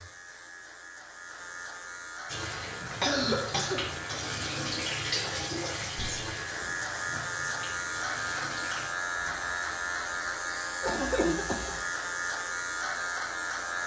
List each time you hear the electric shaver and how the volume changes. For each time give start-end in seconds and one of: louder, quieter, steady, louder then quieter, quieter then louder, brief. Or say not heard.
0.0-13.8 louder.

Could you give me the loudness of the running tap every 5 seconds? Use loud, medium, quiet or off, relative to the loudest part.
loud, loud, off.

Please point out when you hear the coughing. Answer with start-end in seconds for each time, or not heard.
3.0-3.9, 10.8-11.8.